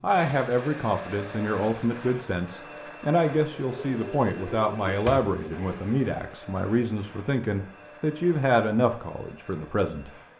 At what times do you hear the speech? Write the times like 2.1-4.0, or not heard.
0.0-10.2.